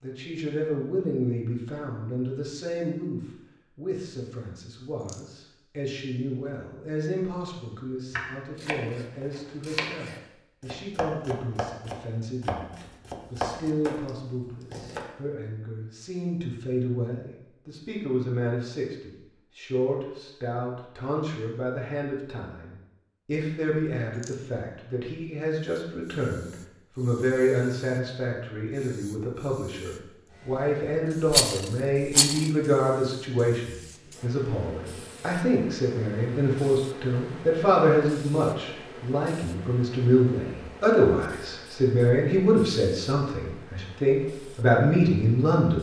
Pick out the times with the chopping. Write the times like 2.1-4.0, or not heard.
8.1-15.1.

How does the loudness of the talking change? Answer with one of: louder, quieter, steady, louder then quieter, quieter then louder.
louder.